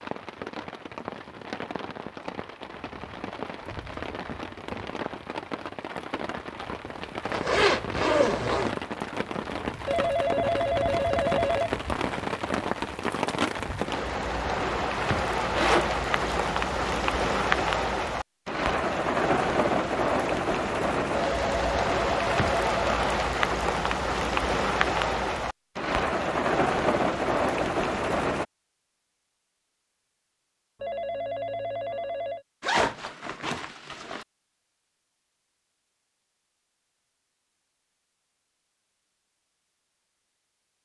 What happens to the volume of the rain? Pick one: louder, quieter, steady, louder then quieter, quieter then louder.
louder.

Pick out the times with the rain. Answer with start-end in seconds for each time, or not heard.
0.0-28.4.